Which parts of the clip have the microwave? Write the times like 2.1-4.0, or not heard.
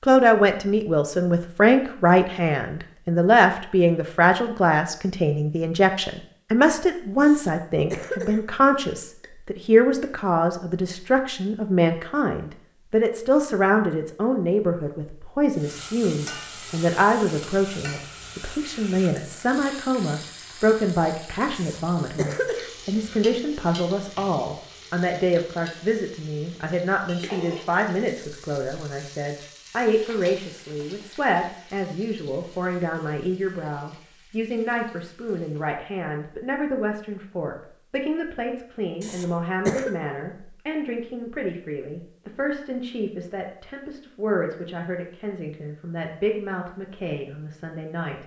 not heard.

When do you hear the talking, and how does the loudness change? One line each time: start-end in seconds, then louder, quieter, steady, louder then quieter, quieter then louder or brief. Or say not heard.
0.0-48.2 quieter.